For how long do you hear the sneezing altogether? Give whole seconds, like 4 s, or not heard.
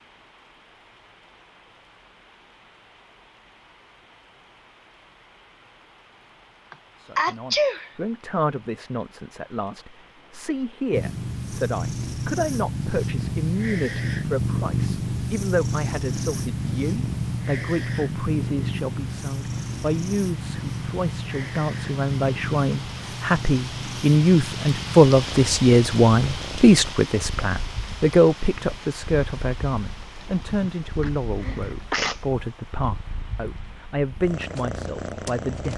3 s.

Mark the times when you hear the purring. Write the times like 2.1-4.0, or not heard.
10.9-35.7.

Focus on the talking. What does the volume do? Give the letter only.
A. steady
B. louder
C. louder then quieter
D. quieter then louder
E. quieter
C.